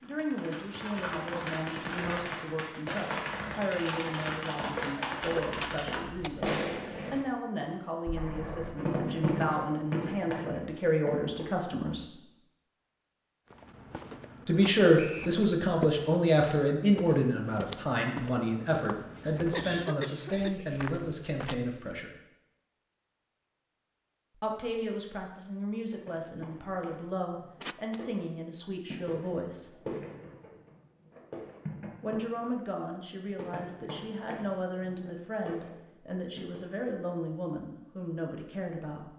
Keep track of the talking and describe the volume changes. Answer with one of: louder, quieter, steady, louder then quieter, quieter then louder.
louder then quieter.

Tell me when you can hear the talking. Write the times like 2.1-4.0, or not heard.
0.0-12.2, 14.4-22.1, 24.4-29.7, 32.0-39.1.